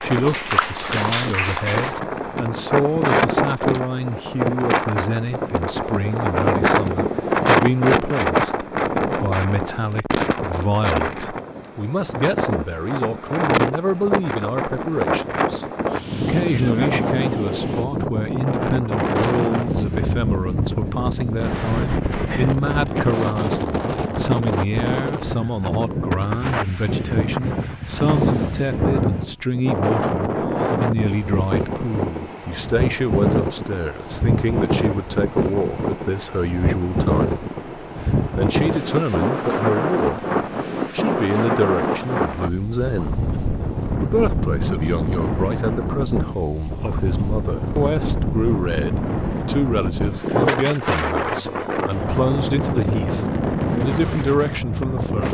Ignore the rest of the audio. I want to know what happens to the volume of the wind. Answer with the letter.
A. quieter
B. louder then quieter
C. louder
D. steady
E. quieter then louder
D.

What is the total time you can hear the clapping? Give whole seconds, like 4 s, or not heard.
2 s.